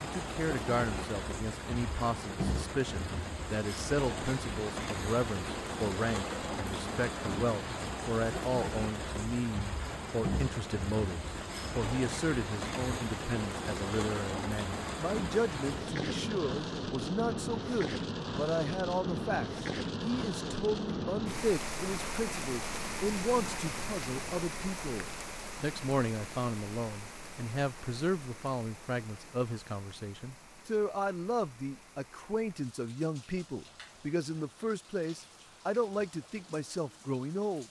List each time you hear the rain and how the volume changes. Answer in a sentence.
The rain can be heard from 0.0 to 37.6 s, getting quieter.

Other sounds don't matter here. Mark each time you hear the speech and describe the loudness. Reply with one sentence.
The speech can be heard from 0.0 to 37.6 s, at a steady volume.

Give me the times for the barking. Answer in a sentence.
The barking can't be heard in this clip.